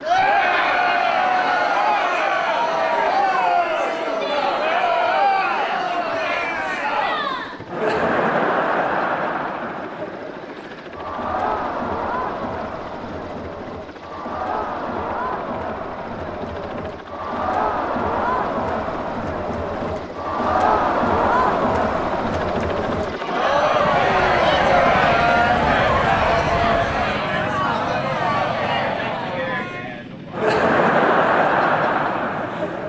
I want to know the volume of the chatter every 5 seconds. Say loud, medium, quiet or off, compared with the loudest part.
loud, loud, medium, medium, loud, loud, loud.